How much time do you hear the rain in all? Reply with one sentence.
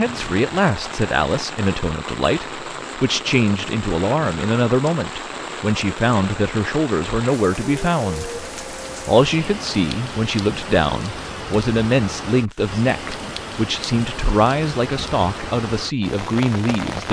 The rain can be heard for 17 seconds in total.